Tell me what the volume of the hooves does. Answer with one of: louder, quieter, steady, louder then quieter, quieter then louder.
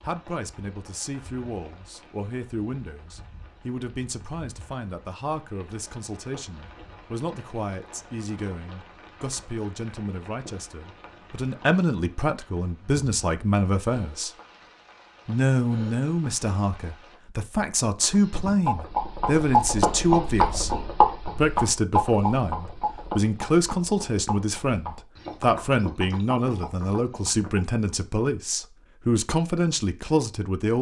quieter.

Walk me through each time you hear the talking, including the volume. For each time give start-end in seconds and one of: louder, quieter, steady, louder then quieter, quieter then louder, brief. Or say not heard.
0.1-14.3 louder
15.2-30.7 steady.